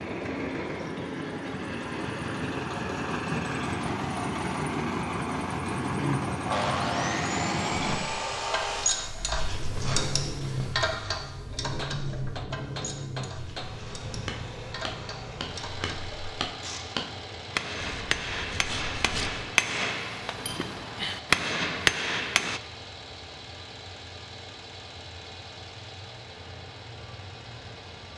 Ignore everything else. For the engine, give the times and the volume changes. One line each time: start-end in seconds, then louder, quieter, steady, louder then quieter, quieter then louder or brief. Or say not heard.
0.0-28.1 quieter.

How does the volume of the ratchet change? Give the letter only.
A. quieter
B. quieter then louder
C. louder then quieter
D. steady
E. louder
A.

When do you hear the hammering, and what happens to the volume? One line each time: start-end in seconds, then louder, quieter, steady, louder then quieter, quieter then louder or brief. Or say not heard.
11.8-22.6 louder.